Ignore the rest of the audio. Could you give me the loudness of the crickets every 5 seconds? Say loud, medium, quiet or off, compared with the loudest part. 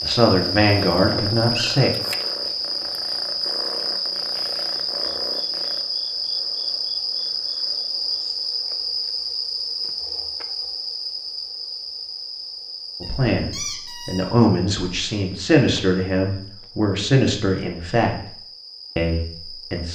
loud, loud, medium, quiet.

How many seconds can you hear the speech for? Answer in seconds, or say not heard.
8 s.